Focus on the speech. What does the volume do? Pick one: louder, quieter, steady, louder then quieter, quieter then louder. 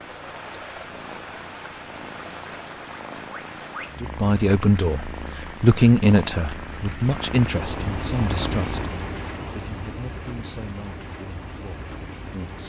quieter.